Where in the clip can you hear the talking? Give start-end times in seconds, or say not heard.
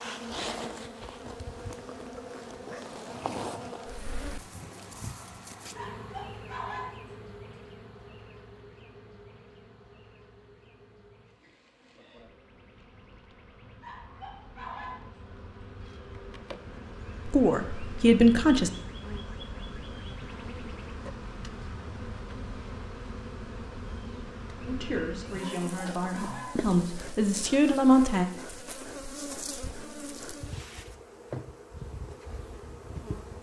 17.2-18.7, 24.6-28.2.